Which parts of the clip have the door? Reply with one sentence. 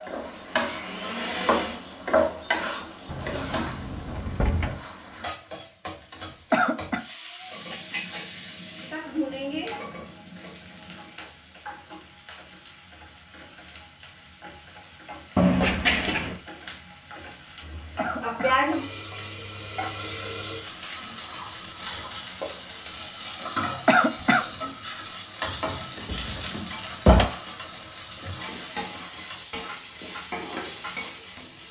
The door can be heard from 3.0 to 4.8 s, from 15.3 to 16.4 s and from 25.9 to 27.3 s.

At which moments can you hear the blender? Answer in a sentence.
You can hear the blender from 0.1 to 2.0 s.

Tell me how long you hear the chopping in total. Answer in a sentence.
You can't hear the chopping here.